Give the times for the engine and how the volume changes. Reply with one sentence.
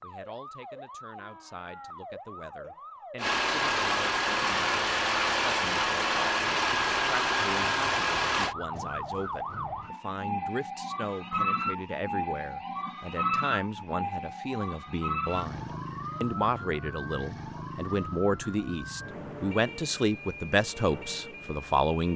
The engine can be heard from 3.1 to 8.6 s, at a steady volume.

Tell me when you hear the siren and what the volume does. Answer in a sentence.
The siren can be heard from 0.0 to 22.1 s, getting louder then quieter.